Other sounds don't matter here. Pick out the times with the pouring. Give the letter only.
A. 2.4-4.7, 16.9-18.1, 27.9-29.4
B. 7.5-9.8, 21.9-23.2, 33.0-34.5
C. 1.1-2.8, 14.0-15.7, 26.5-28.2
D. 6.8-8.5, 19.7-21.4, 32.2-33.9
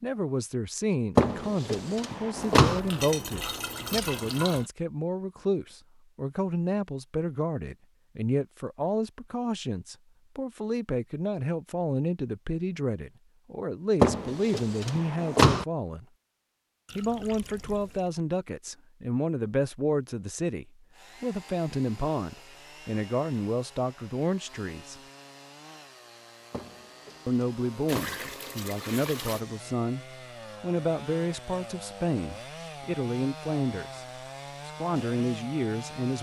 A.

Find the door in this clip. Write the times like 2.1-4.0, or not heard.
1.1-2.8, 14.0-15.7, 26.5-28.2.